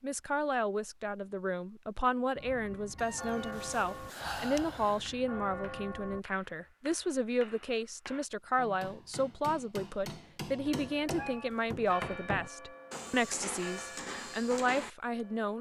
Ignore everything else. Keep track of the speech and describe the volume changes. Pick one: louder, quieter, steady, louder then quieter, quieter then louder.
steady.